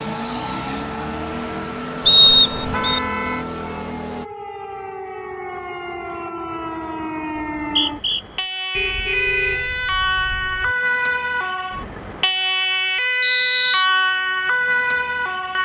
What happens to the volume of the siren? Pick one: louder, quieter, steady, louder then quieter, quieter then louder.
louder.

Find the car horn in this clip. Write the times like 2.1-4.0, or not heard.
2.5-3.5, 8.7-10.8.